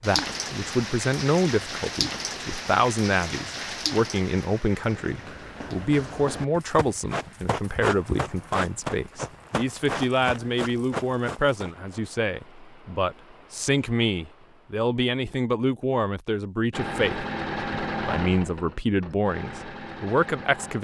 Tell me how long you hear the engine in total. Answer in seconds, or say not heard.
4 s.